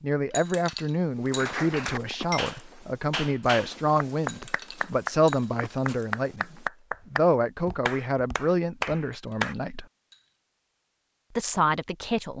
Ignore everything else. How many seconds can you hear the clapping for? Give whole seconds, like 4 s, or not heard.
8 s.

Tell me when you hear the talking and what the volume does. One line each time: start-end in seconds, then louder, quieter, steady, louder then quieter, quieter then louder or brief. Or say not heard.
0.0-9.8 steady
11.3-12.3 brief.